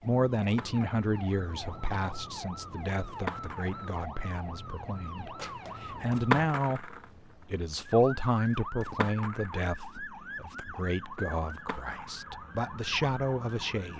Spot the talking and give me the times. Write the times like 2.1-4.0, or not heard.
0.0-13.9.